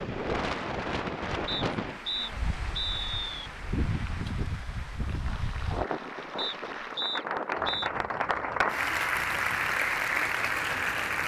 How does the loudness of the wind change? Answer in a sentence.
The loudness of the wind goes down.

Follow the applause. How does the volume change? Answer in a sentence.
The volume of the applause goes up.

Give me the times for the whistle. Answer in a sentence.
You can hear the whistle from 1.4 to 3.5 s and from 6.3 to 7.9 s.